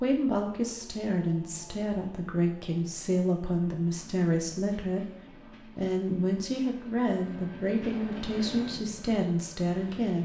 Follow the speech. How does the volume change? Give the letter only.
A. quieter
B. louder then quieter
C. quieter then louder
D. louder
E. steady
E.